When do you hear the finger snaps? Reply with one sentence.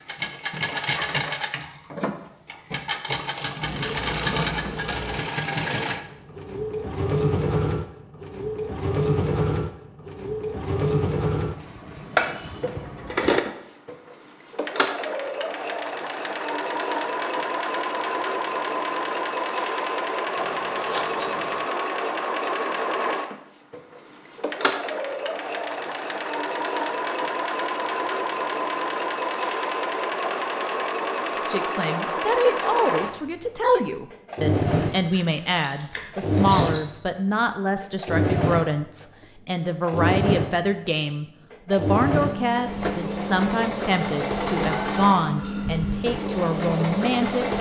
You can't hear the finger snaps here.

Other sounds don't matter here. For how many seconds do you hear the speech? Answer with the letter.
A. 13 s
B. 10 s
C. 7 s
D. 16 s
D.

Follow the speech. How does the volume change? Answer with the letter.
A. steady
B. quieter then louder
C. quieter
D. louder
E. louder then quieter
A.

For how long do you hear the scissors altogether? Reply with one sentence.
The scissors can be heard for 5 seconds in total.